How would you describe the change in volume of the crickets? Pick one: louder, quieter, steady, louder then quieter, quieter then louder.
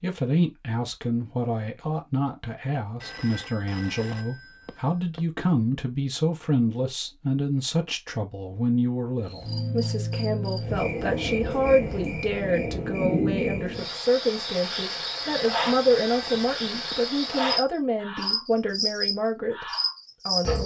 steady.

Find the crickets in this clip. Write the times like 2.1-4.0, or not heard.
9.2-20.6.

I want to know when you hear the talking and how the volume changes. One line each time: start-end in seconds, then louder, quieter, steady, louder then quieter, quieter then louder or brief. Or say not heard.
0.0-20.6 steady.